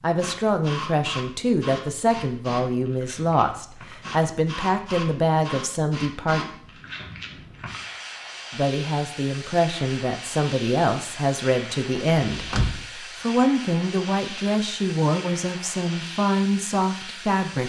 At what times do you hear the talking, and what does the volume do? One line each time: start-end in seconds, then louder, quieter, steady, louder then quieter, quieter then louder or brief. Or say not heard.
0.0-6.4 steady
8.5-17.6 steady.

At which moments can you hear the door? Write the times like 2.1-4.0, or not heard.
12.2-12.8.